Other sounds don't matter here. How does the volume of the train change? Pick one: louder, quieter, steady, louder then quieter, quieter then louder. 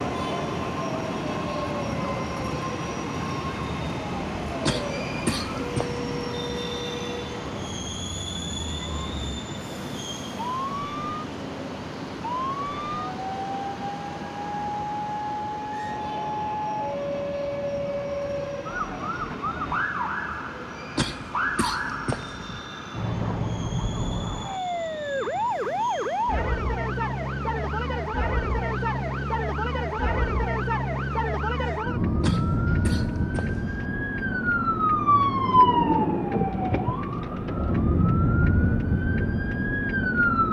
quieter.